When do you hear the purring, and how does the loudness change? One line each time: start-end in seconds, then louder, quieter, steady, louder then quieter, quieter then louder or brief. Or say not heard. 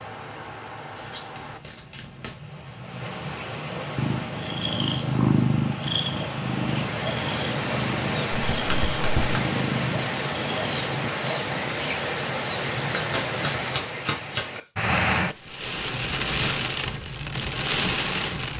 4.0-11.1 quieter.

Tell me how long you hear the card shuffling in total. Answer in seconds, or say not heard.
4 s.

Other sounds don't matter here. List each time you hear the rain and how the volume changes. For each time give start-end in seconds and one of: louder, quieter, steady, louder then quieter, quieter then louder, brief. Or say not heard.
0.0-18.5 louder.